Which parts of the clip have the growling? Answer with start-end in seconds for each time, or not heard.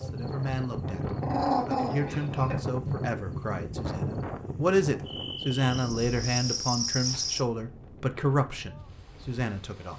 1.2-2.5.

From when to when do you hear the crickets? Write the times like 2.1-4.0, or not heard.
0.0-7.5.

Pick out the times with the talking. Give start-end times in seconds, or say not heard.
0.0-9.9.